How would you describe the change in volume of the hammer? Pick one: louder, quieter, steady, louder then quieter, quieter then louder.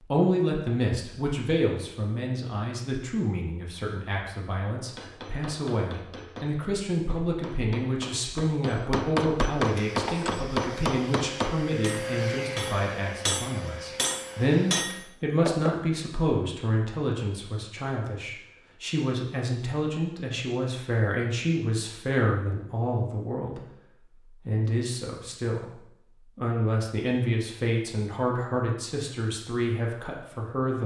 louder.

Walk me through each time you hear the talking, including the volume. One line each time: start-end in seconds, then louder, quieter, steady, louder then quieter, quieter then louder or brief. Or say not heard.
0.0-30.8 steady.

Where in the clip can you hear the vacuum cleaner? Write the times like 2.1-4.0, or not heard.
9.6-15.2.